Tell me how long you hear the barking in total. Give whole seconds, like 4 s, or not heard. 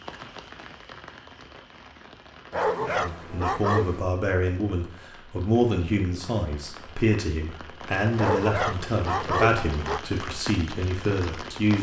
3 s.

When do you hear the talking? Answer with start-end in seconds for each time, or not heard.
2.8-11.7.